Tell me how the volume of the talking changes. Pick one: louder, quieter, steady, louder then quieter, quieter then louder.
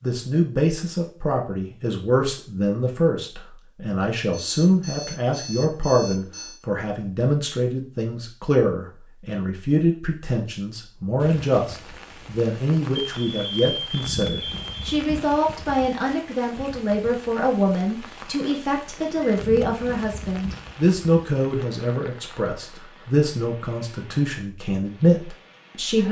steady.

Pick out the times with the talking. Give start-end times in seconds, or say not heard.
0.0-26.0.